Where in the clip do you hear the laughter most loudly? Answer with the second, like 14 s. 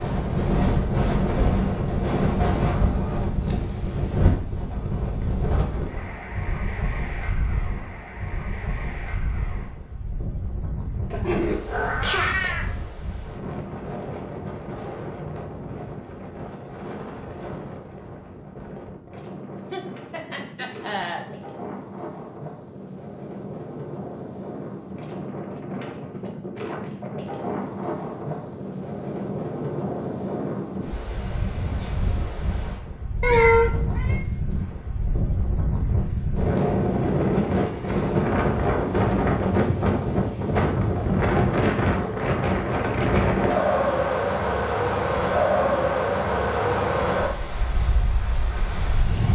21 s.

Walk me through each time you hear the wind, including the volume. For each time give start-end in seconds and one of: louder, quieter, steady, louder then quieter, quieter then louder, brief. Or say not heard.
0.0-49.3 quieter then louder.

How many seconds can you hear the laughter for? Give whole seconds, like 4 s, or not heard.
2 s.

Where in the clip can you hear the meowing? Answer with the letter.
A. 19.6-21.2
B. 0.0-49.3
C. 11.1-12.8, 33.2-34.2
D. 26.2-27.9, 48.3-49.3
C.